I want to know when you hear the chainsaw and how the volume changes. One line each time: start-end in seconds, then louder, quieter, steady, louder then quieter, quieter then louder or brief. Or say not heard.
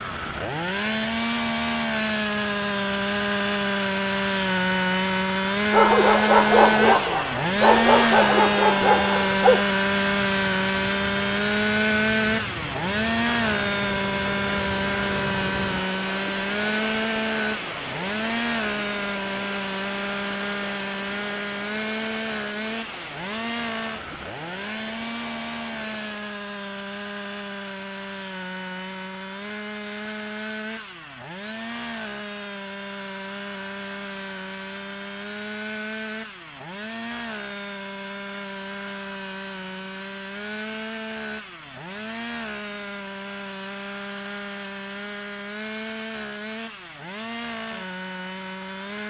0.0-49.0 quieter.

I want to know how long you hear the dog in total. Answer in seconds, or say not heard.
4 s.